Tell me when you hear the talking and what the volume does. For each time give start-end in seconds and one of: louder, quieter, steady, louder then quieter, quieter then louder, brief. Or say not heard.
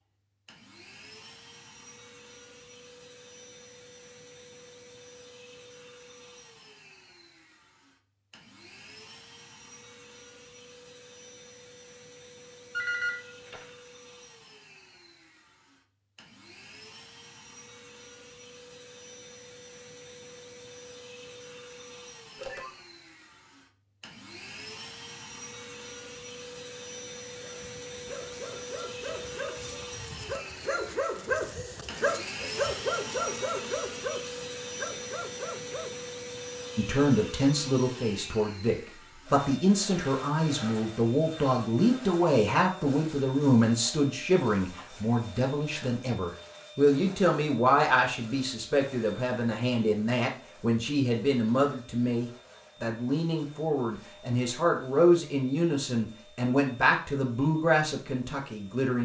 36.8-59.0 steady.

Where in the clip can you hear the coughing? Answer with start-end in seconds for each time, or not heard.
not heard.